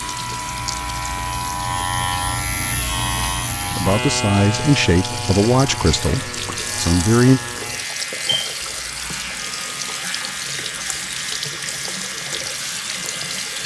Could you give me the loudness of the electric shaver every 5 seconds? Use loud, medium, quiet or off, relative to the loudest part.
loud, medium, medium.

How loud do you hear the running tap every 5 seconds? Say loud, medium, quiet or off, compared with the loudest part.
medium, loud, loud.